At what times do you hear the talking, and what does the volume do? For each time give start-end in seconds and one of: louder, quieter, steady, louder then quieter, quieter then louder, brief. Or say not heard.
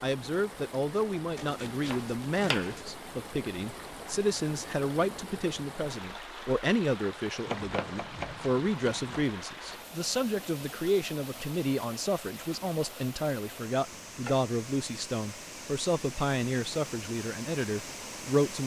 0.0-18.6 steady.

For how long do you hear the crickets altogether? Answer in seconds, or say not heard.
not heard.